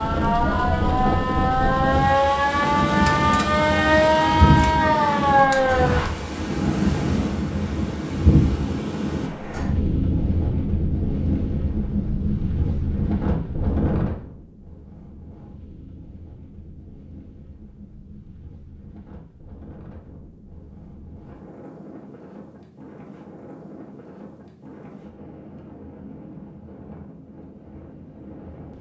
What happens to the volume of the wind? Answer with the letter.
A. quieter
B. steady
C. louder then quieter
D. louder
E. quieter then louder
A.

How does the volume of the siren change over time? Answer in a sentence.
The volume of the siren goes up.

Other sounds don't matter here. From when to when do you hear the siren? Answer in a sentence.
You can hear the siren from 0.0 to 6.1 s.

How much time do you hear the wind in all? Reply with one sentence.
The wind can be heard for 29 seconds in total.